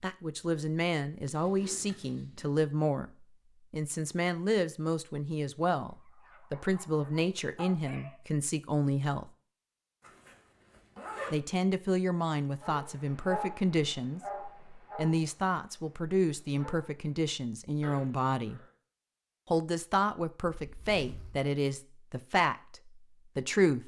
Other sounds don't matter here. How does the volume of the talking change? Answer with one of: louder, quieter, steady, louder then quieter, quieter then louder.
steady.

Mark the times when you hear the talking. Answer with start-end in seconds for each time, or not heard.
0.0-9.3, 11.3-18.6, 19.5-23.8.